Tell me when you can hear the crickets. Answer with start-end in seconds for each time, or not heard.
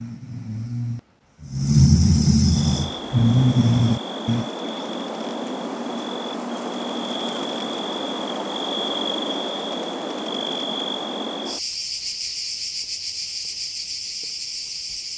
2.5-15.1.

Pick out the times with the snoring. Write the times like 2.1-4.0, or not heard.
0.0-4.5.